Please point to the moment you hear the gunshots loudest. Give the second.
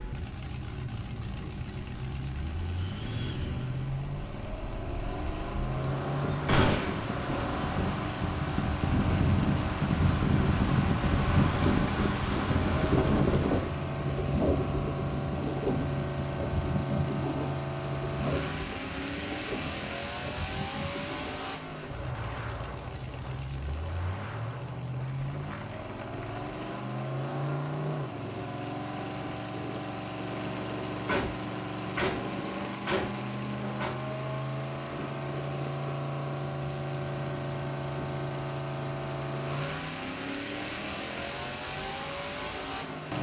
7 s.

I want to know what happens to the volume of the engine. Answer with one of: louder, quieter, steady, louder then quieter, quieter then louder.
steady.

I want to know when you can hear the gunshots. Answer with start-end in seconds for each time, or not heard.
6.5-7.0, 31.1-33.9.